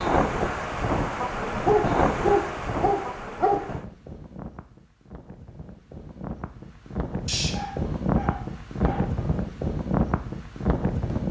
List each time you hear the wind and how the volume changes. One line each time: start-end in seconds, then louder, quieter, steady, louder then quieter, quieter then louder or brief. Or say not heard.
0.0-11.2 quieter then louder.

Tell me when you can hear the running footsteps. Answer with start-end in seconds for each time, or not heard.
not heard.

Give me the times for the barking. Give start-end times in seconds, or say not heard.
1.6-3.6, 7.2-9.2.